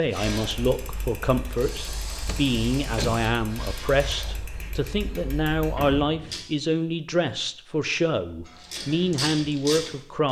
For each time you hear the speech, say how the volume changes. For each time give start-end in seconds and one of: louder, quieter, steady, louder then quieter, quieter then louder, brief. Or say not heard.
0.0-10.2 steady.